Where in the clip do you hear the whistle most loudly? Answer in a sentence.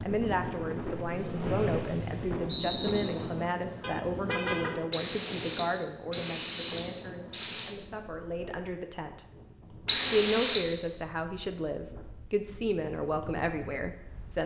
The loudest moment of the whistle is at 10 seconds.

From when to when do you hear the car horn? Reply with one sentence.
You can hear the car horn from 3.8 to 4.8 s.